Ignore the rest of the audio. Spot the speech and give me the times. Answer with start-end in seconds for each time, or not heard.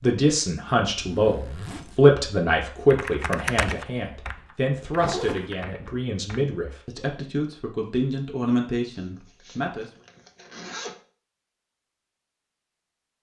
0.0-9.8.